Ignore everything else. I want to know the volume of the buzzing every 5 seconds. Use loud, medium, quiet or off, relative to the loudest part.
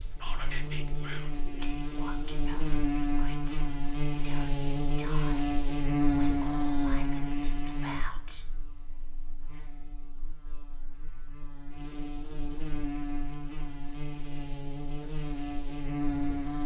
loud, loud, medium, loud.